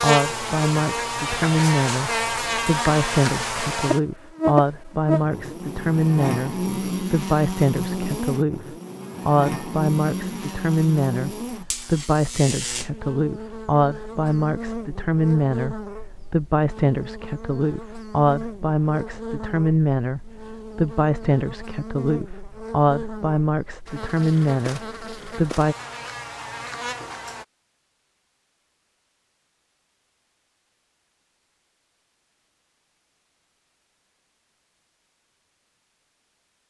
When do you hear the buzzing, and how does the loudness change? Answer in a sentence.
The buzzing can be heard from 0.0 to 27.4 s, getting quieter.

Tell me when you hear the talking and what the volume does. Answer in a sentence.
The talking can be heard from 0.0 to 25.8 s, at a steady volume.